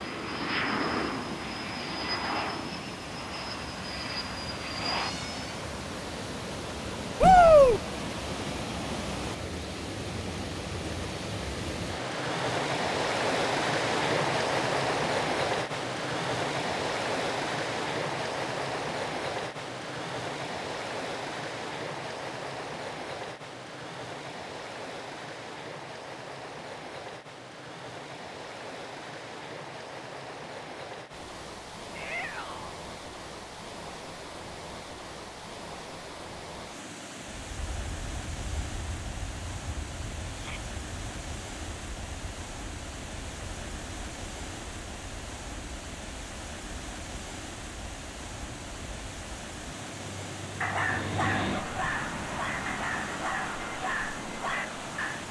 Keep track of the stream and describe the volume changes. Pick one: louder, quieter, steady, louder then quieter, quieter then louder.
louder then quieter.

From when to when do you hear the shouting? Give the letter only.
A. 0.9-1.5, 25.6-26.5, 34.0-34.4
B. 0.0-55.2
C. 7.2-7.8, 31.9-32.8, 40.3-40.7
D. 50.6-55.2
C.